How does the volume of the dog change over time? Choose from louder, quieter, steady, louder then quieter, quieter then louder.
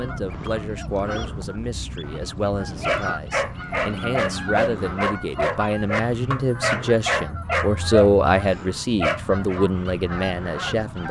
steady.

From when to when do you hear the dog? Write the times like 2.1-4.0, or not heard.
2.8-9.6.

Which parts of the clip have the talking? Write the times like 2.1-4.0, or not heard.
0.0-11.0.